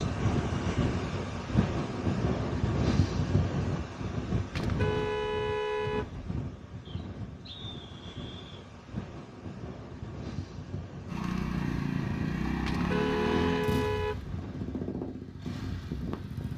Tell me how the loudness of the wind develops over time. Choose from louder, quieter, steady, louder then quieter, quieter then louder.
quieter.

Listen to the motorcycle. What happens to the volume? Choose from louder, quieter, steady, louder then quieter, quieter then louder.
quieter.